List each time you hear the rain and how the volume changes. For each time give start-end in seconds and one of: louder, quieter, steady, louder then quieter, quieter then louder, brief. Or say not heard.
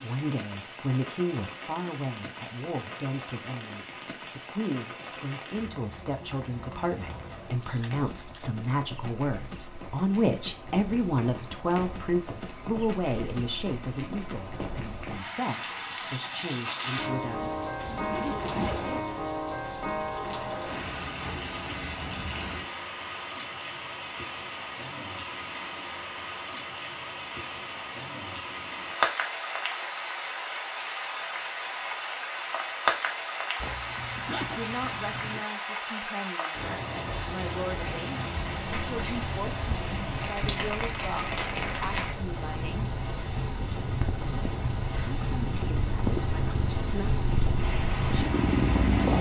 0.0-49.1 louder.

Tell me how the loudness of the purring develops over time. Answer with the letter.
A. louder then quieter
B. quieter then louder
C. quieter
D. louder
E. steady
D.